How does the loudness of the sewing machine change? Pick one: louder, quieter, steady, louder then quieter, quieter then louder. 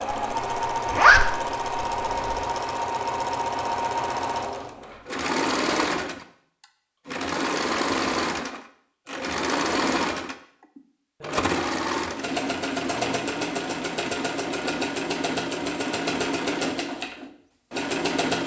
steady.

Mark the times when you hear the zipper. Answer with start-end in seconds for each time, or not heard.
0.8-2.5.